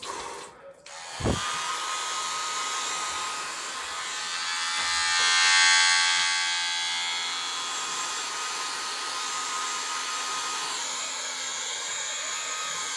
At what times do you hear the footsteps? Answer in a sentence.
You can't hear the footsteps here.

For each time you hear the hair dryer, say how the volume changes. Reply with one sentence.
You can hear the hair dryer from 0.0 to 12.9 s, getting quieter then louder.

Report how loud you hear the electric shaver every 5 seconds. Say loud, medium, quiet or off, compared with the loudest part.
medium, loud, quiet.